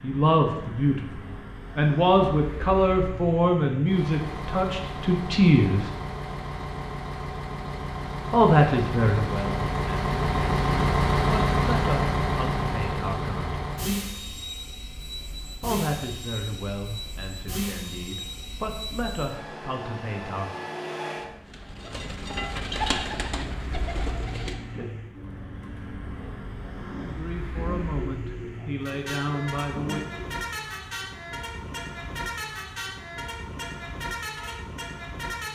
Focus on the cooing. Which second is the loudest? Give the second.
23 s.